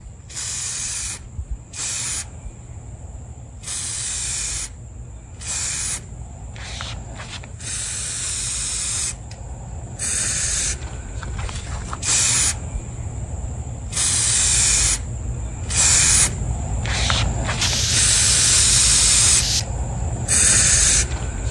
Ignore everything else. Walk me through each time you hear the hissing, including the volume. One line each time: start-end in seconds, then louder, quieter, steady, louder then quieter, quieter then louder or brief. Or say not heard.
0.0-21.4 louder.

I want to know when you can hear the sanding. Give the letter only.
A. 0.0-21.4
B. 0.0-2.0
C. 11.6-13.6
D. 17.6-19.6
D.